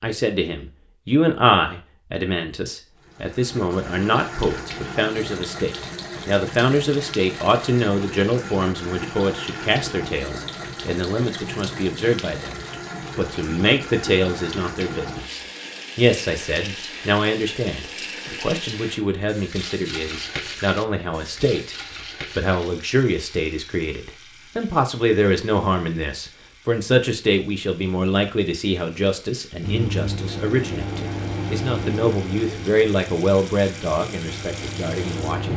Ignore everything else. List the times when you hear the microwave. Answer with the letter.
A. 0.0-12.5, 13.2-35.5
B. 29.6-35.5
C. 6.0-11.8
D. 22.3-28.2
B.